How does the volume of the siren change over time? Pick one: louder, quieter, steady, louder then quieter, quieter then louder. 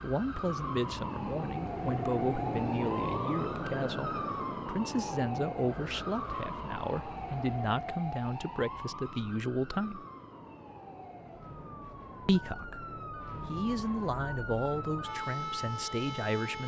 quieter then louder.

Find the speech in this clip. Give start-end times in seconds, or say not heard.
0.0-10.1, 12.2-16.6.